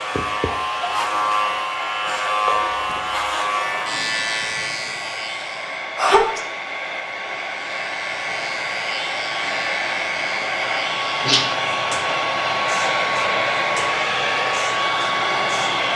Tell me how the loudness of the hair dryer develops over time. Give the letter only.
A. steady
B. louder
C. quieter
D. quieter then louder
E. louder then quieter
B.